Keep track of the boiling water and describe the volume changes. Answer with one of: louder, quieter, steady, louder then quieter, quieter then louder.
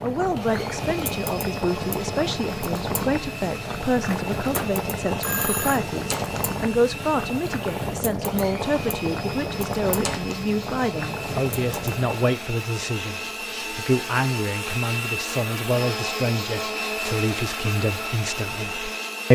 steady.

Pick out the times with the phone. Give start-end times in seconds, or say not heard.
4.0-5.8.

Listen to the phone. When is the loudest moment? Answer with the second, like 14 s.
5 s.